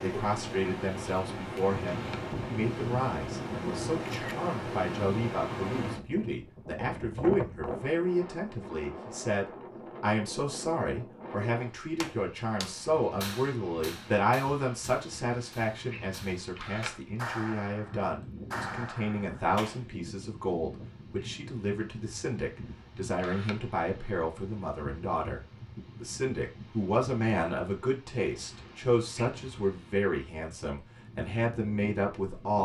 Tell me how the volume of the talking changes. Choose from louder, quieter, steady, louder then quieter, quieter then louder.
steady.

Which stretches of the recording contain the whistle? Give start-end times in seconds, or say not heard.
not heard.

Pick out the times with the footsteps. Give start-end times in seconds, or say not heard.
not heard.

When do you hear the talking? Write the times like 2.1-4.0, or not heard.
0.0-32.6.